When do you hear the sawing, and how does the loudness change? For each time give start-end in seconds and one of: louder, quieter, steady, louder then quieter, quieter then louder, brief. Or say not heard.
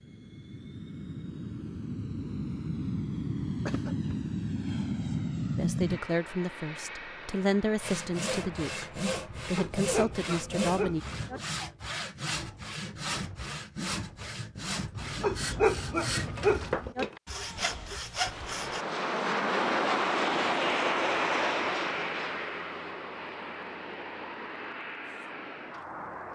7.8-18.9 steady.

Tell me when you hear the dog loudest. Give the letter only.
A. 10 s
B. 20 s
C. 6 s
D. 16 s
D.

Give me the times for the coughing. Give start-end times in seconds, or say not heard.
3.6-4.2.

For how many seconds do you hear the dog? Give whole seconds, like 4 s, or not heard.
4 s.